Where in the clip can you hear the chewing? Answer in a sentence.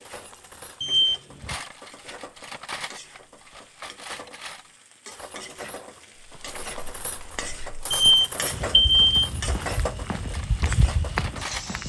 You can't hear the chewing here.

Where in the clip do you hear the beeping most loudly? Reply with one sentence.
The volume of the beeping peaks at 9 seconds.